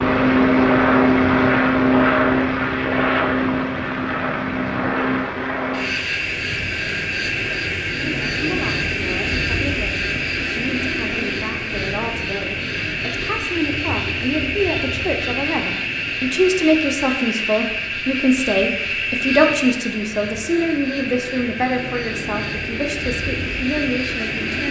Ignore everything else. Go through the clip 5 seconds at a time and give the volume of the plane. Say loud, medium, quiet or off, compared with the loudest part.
loud, medium, medium, medium, medium.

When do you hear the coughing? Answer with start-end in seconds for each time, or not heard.
not heard.